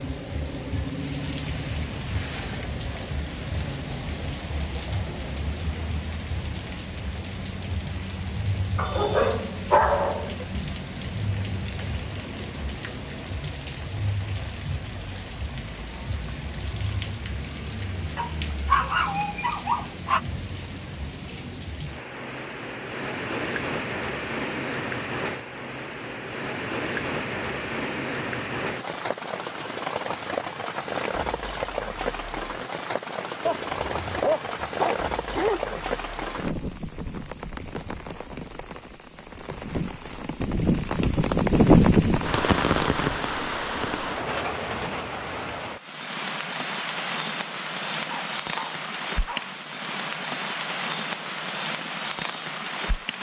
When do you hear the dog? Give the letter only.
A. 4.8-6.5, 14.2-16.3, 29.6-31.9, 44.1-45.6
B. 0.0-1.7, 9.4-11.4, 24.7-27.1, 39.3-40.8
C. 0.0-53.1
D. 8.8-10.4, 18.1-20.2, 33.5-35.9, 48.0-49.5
D.